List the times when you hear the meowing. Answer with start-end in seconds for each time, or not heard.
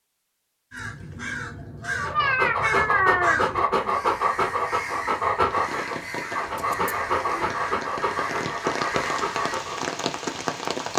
1.9-4.0, 6.5-7.2.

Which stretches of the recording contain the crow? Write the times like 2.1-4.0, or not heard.
0.7-9.6.